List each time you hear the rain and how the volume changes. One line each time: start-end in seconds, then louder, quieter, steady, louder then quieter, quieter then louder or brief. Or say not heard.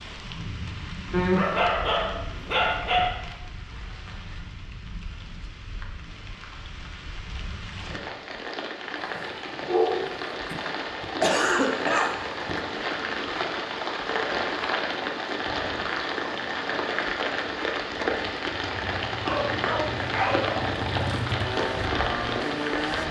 0.0-23.0 louder.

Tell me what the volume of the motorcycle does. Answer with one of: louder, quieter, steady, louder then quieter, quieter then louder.
louder.